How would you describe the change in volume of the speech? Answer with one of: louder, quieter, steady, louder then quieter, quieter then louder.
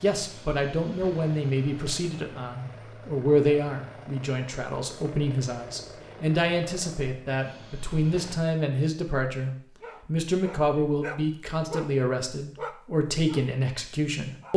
steady.